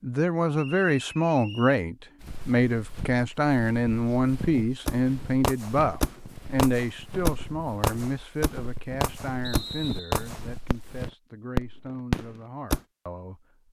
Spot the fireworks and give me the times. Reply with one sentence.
You can hear the fireworks from 4.8 to 10.9 s and from 11.6 to 12.8 s.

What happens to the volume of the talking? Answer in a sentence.
The loudness of the talking goes down.